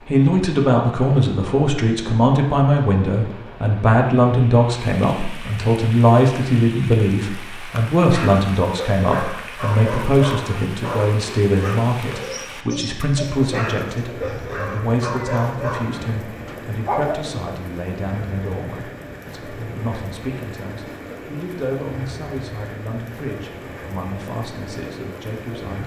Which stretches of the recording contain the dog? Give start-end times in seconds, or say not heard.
8.0-17.2.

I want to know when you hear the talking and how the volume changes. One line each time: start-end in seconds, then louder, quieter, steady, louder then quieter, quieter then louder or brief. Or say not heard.
0.1-25.8 quieter.